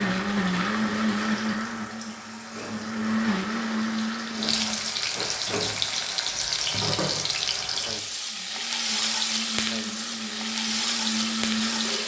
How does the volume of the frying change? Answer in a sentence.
The volume of the frying goes up.